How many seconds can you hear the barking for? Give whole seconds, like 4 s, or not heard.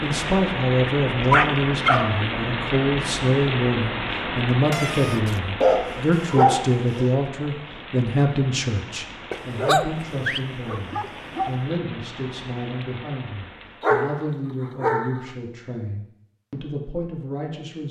7 s.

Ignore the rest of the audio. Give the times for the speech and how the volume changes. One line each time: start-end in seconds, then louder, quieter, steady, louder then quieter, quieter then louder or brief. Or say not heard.
0.0-17.8 quieter.